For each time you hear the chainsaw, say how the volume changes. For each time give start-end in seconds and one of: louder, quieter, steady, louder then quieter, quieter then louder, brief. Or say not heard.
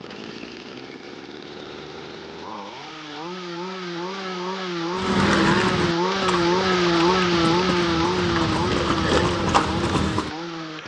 0.0-10.8 louder then quieter.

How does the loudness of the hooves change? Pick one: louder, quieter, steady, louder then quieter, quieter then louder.
quieter then louder.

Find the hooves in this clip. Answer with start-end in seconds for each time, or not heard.
5.0-10.3.